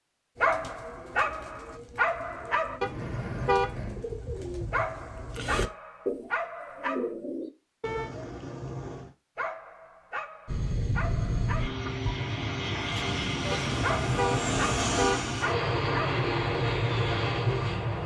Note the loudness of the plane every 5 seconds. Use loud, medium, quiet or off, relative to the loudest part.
off, off, loud, loud.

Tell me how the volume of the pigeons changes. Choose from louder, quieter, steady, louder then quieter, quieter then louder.
louder.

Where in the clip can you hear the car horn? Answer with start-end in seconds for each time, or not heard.
2.8-4.0, 7.8-9.1, 13.5-15.2.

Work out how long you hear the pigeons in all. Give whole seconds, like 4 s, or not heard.
7 s.